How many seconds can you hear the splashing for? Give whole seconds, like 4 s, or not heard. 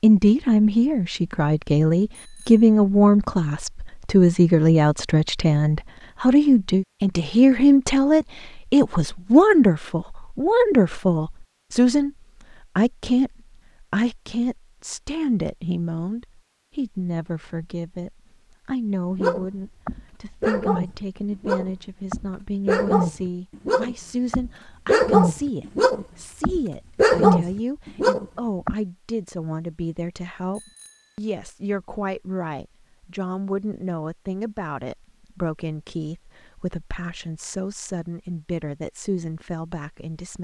not heard.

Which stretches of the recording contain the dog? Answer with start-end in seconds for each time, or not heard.
19.1-28.8.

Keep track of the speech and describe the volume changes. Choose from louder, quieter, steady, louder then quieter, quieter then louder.
quieter.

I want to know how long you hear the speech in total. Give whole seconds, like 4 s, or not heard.
40 s.